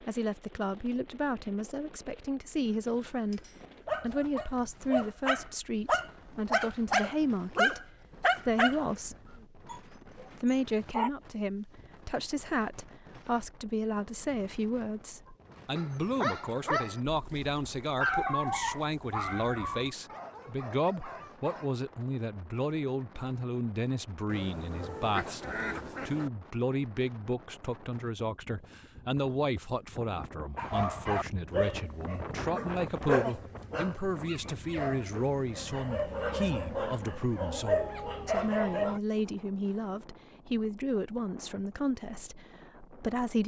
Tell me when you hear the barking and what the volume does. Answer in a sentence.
The barking can be heard from 2.9 to 11.1 s, getting louder then quieter; from 15.8 to 21.7 s, getting quieter; and from 30.6 to 39.0 s, getting quieter then louder.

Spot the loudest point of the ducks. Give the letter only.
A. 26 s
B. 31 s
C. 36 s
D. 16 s
A.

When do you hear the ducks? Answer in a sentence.
You can hear the ducks from 24.2 to 26.3 s.